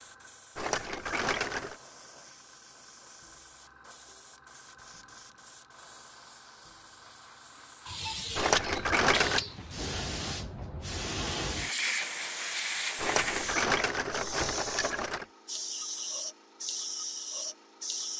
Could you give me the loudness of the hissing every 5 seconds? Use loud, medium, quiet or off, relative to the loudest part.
quiet, medium, loud, loud.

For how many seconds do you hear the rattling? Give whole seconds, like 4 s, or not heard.
5 s.